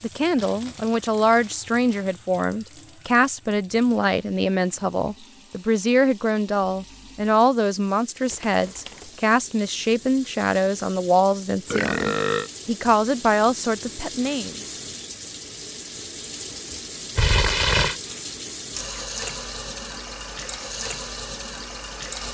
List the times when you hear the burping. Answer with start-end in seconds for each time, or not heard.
11.7-12.5.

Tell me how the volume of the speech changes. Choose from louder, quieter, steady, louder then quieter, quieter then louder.
steady.